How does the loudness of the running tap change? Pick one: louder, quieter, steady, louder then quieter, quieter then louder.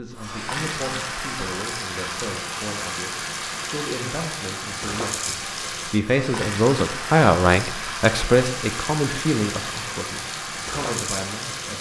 steady.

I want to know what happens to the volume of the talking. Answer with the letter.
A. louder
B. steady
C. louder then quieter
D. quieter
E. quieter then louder
C.